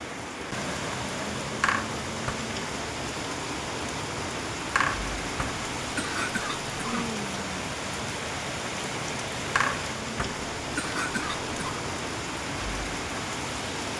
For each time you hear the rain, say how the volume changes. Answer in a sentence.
You can hear the rain from 0.0 to 13.9 s, at a steady volume.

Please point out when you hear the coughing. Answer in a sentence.
You can hear the coughing from 1.6 to 2.4 s, from 4.8 to 7.2 s and from 9.6 to 11.6 s.